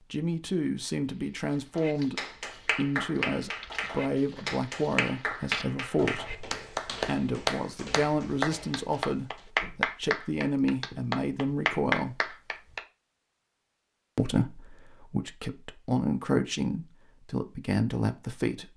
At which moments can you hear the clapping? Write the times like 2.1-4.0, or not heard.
1.8-12.8.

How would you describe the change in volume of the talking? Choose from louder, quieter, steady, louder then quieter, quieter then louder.
steady.